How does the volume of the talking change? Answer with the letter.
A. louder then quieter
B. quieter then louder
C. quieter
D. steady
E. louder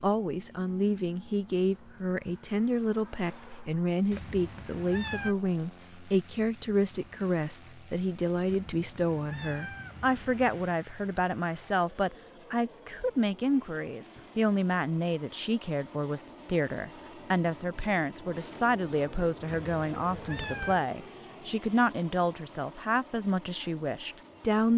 D.